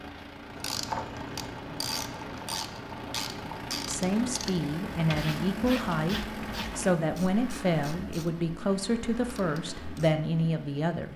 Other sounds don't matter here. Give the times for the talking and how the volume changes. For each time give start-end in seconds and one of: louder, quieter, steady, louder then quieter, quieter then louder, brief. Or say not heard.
3.9-11.1 steady.